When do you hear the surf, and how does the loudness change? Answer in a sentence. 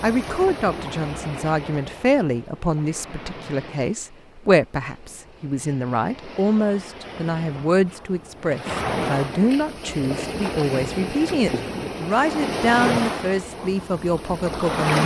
The surf can be heard from 0.0 to 15.0 s, getting quieter then louder.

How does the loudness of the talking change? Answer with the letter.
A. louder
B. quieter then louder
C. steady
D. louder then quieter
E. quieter
C.